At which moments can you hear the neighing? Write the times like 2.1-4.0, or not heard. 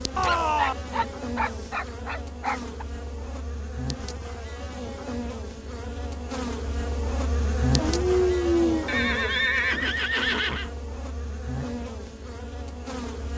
0.1-0.8, 8.8-10.7.